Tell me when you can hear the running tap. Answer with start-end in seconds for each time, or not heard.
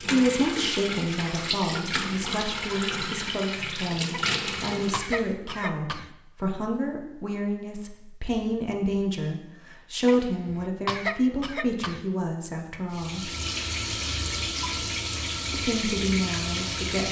0.0-5.2, 12.9-17.0.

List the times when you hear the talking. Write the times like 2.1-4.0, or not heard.
0.0-13.3, 15.5-17.0.